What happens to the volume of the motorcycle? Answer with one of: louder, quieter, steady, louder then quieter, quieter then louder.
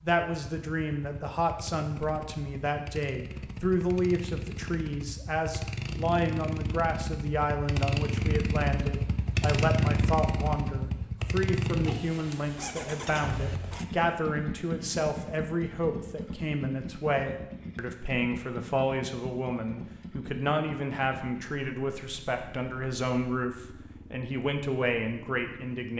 louder then quieter.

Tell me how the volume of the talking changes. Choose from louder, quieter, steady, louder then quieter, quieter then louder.
steady.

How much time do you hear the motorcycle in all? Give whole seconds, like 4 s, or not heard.
26 s.